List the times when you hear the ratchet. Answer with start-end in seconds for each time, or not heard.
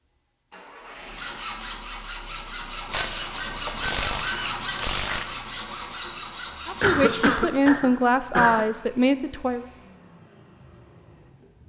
2.9-5.3.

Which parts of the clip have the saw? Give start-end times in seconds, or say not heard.
1.1-7.5.